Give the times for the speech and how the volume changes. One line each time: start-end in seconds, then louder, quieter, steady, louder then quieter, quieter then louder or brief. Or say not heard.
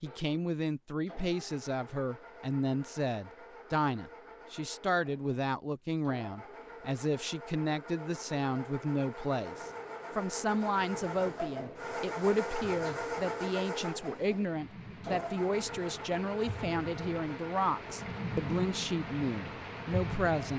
0.0-20.5 steady.